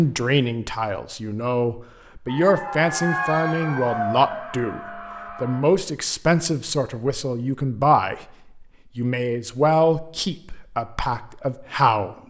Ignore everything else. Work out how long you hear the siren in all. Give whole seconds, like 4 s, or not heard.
3 s.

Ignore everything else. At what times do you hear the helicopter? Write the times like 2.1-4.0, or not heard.
not heard.